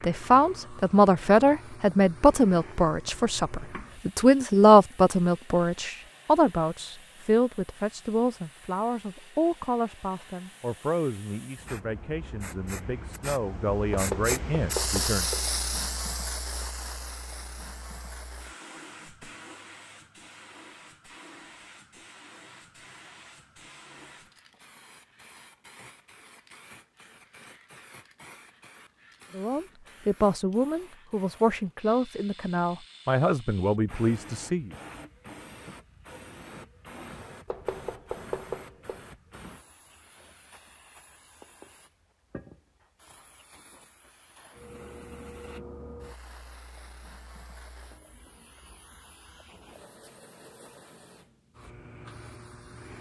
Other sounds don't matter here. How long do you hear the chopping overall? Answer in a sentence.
You can hear the chopping for 3 seconds altogether.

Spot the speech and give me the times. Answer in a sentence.
The speech can be heard from 0.0 to 15.3 s and from 29.3 to 34.8 s.